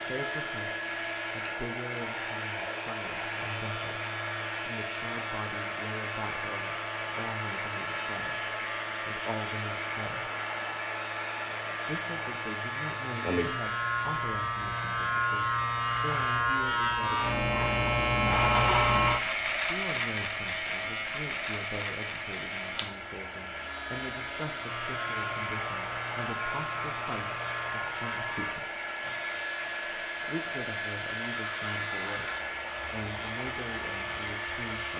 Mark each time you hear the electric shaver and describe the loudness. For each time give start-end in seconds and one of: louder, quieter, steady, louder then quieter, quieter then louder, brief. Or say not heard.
0.0-34.9 louder then quieter.